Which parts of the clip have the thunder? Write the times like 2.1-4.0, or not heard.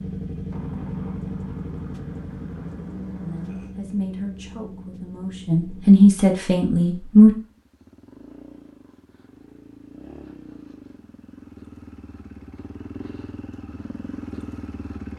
0.5-3.8.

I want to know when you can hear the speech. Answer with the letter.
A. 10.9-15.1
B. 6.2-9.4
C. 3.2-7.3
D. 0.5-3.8
C.